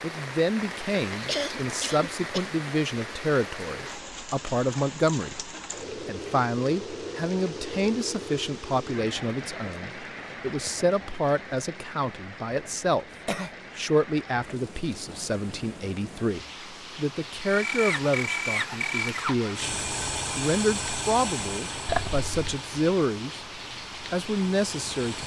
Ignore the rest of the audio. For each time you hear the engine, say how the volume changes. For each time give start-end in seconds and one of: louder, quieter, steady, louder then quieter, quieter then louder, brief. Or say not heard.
17.4-25.2 quieter.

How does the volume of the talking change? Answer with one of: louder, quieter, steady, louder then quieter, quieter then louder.
steady.